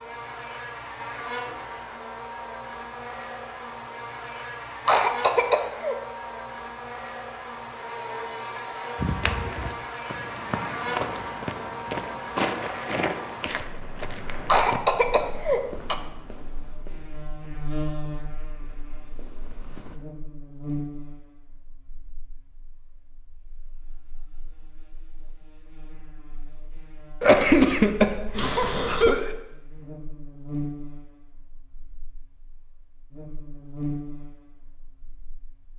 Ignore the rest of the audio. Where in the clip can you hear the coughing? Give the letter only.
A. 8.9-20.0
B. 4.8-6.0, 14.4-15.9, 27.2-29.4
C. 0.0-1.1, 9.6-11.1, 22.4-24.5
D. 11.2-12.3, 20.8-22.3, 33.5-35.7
B.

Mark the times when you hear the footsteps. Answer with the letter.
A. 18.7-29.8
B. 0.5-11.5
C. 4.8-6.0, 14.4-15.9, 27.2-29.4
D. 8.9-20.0
D.